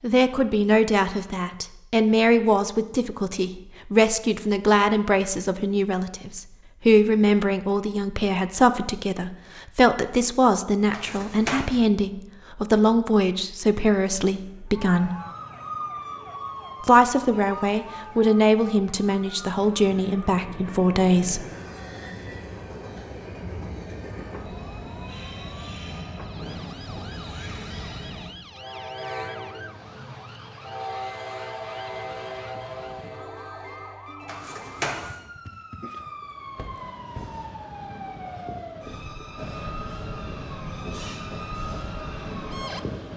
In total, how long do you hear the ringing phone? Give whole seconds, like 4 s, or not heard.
2 s.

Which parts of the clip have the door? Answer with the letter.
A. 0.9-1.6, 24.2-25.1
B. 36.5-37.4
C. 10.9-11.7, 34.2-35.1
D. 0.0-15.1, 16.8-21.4
B.